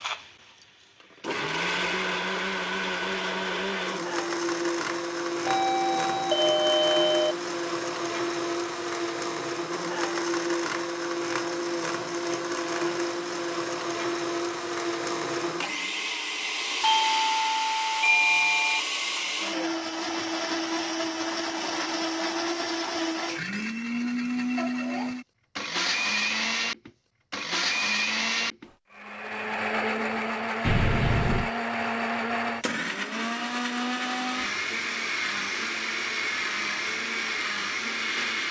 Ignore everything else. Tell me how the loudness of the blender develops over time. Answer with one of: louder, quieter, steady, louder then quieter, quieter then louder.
steady.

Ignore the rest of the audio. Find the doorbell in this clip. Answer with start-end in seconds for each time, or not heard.
5.5-7.3, 16.8-18.8, 30.6-31.5.